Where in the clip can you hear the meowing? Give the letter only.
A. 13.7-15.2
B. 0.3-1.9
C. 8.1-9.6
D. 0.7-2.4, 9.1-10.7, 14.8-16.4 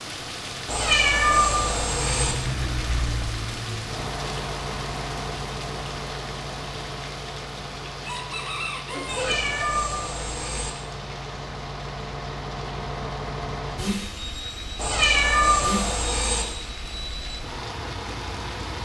D.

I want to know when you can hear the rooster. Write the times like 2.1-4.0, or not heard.
8.1-9.6.